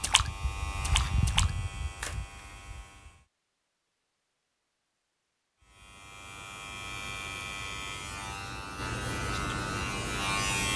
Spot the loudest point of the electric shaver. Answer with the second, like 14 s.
10 s.